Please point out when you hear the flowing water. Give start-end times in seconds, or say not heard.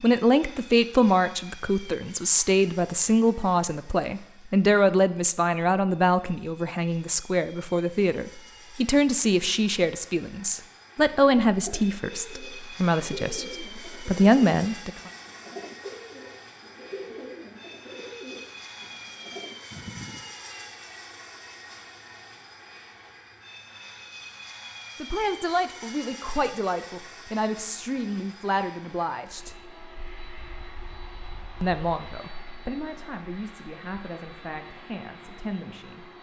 not heard.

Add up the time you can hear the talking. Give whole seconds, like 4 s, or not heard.
24 s.